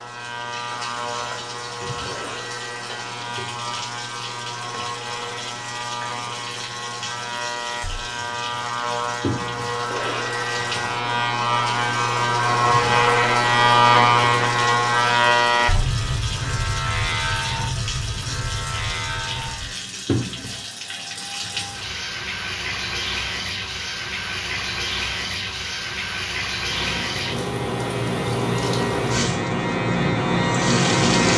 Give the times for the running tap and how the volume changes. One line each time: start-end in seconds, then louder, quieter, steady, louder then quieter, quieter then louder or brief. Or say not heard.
0.0-31.3 louder.